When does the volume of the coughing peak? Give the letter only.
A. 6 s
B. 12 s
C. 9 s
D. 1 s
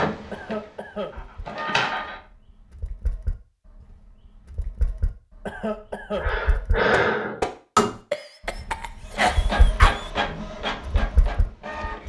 C.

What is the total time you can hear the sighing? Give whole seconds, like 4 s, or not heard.
2 s.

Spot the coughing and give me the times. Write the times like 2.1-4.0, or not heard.
0.3-1.1, 5.5-6.2, 8.1-10.1.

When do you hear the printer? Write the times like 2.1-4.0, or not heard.
0.0-2.2, 9.1-12.0.